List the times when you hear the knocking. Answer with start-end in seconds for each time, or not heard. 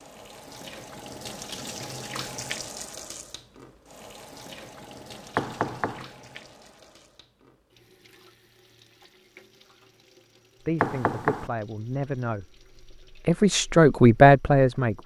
5.3-6.0, 10.8-11.5.